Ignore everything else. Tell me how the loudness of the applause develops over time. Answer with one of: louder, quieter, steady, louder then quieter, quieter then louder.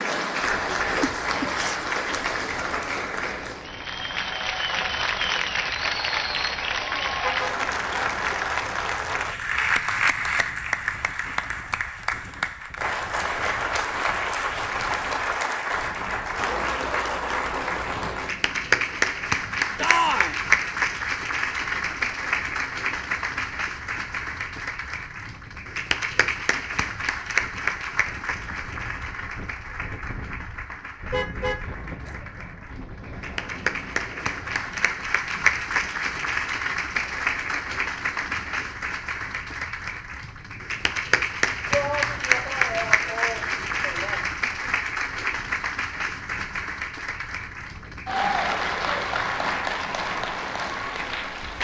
steady.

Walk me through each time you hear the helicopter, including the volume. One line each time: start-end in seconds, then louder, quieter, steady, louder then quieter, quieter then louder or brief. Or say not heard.
not heard.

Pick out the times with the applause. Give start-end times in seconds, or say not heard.
0.0-51.5.